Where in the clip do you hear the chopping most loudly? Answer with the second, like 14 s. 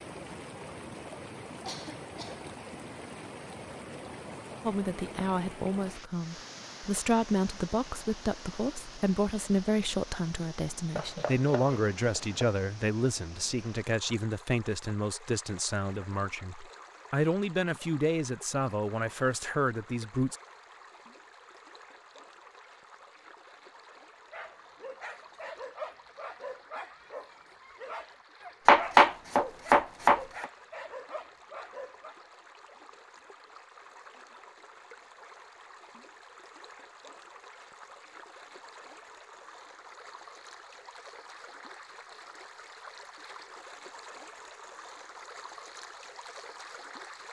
29 s.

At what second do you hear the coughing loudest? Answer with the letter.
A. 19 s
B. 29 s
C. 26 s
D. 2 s
D.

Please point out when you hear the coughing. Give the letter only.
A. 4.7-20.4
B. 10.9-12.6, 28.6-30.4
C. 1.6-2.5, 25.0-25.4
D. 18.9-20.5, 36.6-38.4
C.